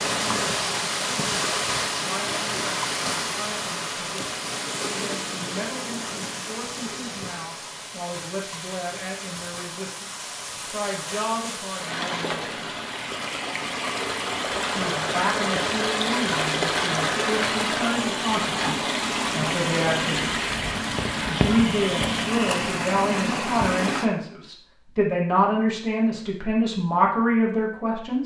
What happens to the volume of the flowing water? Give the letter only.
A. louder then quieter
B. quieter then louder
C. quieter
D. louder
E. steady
B.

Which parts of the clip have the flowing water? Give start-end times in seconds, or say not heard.
0.0-24.1.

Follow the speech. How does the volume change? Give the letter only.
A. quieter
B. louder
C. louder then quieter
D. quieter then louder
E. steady
B.